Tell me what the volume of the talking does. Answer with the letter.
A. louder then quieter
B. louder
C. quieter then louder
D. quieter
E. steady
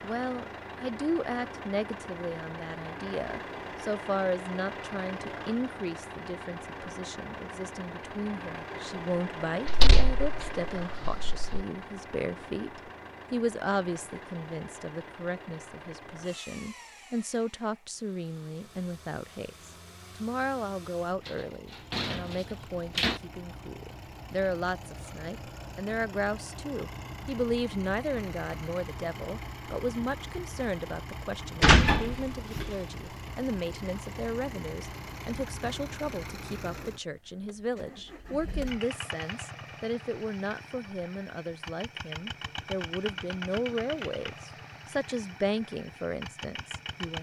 E.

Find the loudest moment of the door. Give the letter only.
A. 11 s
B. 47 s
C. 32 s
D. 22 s
C.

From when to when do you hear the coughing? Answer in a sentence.
The coughing can't be heard in this clip.